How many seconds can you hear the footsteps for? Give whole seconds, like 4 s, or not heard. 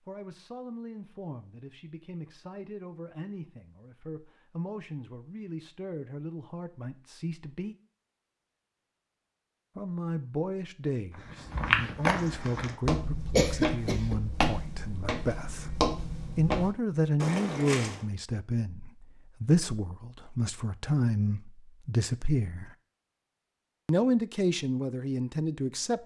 7 s.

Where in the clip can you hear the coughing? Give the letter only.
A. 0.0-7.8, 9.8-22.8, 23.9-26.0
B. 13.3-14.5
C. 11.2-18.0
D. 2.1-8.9
B.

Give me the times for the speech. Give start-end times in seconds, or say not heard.
0.0-7.8, 9.8-22.8, 23.9-26.0.